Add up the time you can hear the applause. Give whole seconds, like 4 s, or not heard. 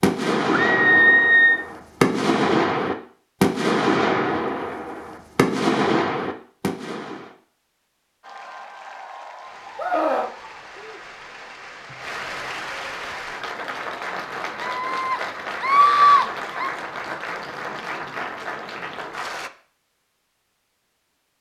11 s.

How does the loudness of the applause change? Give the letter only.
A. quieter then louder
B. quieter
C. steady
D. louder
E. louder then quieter
D.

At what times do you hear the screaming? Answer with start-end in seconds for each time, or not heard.
0.7-1.6, 9.8-10.3, 14.6-16.8.